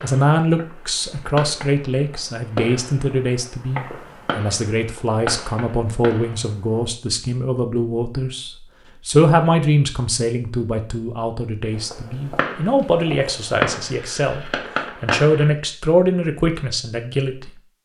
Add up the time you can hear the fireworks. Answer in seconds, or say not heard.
11 s.